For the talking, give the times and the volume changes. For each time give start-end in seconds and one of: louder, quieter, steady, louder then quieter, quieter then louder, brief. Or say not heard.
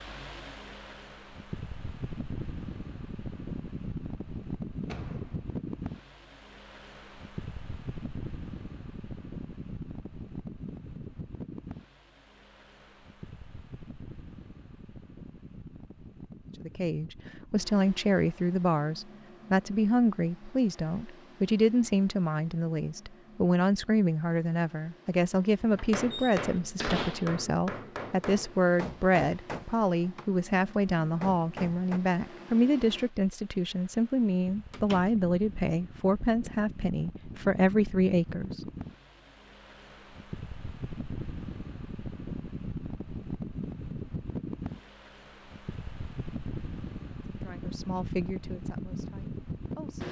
16.6-38.6 steady
47.2-50.0 brief.